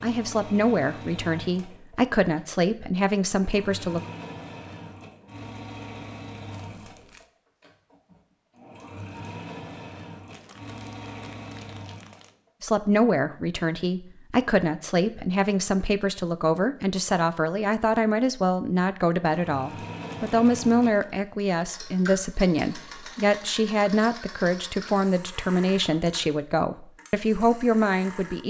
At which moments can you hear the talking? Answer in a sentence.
The talking can be heard from 0.0 to 4.0 s and from 12.6 to 28.4 s.